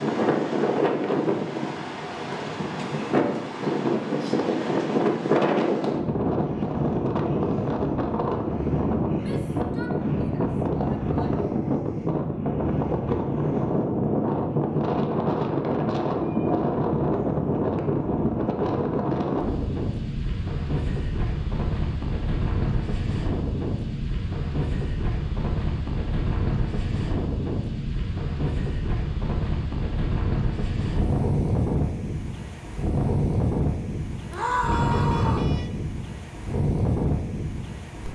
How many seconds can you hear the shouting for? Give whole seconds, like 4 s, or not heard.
3 s.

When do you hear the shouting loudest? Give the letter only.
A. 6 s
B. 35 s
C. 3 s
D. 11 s
B.